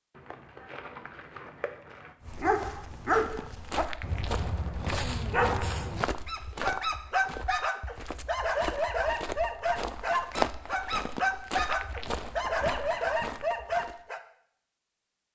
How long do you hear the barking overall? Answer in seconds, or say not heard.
12 s.